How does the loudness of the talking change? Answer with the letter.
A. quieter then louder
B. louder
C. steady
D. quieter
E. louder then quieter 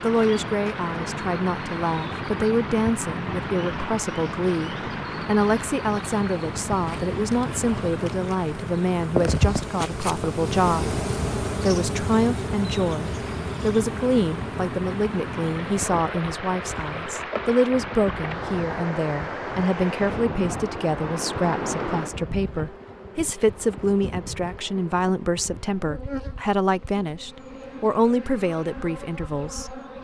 C.